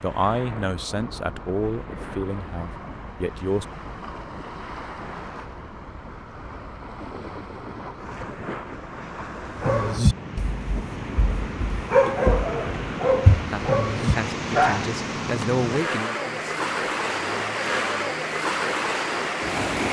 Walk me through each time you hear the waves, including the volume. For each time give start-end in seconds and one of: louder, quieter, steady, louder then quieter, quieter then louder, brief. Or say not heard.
0.0-19.8 louder.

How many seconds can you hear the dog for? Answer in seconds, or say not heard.
6 s.